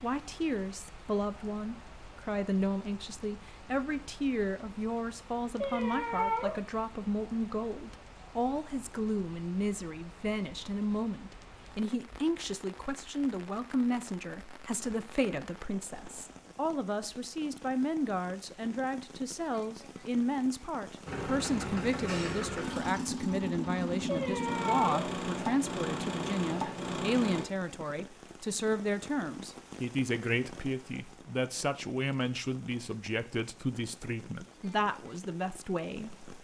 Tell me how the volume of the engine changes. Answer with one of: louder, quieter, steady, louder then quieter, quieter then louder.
steady.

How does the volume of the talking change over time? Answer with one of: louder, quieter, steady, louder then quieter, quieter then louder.
steady.